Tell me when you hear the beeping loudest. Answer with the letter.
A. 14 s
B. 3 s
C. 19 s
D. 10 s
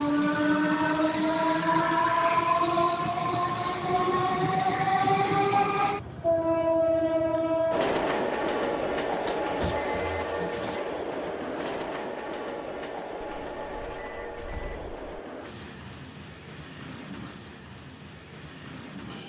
D.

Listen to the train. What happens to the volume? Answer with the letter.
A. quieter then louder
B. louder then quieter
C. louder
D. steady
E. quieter
E.